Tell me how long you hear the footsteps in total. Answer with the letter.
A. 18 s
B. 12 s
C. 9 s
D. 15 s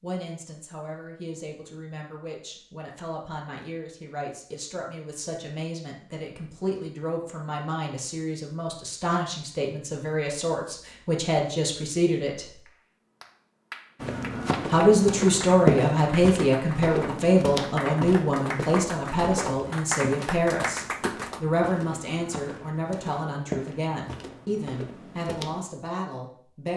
B.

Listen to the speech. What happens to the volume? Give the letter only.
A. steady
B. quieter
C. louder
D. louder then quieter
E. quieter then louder
D.